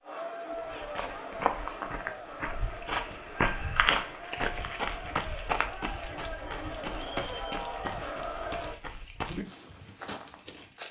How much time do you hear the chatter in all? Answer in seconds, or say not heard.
9 s.